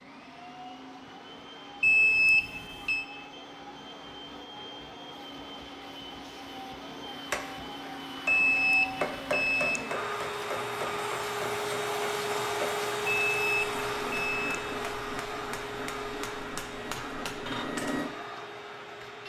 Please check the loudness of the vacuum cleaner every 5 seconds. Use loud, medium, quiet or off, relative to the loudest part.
quiet, medium, loud, medium.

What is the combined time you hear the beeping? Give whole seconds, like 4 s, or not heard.
4 s.